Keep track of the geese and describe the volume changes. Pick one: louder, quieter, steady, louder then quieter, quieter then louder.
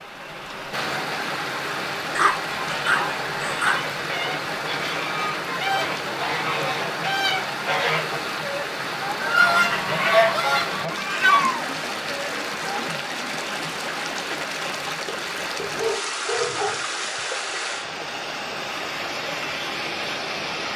louder.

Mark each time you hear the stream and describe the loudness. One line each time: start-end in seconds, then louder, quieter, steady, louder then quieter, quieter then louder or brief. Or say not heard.
0.0-20.7 steady.